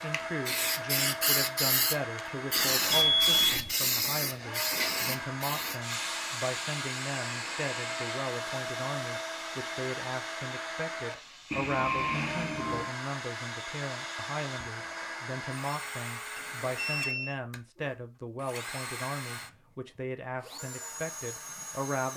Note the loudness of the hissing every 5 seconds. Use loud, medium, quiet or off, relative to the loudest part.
loud, medium, medium, off, off.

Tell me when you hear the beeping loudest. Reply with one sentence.
The loudest moment of the beeping is at 3 seconds.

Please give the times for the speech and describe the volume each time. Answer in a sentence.
You can hear the speech from 0.0 to 22.1 s, at a steady volume.